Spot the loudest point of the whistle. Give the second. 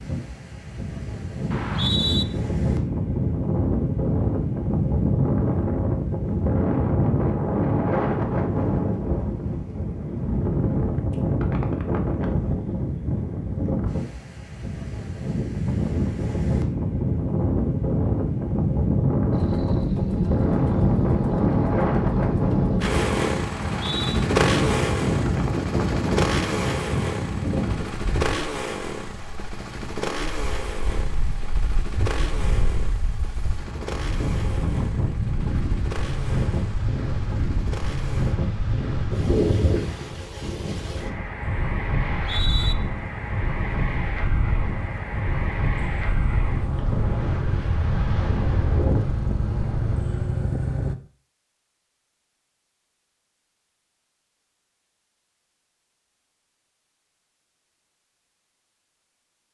2 s.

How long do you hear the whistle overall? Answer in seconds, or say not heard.
2 s.